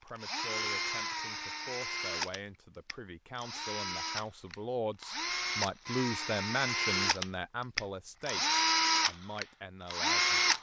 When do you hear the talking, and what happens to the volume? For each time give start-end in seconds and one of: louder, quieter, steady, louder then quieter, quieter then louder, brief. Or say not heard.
0.0-10.5 louder then quieter.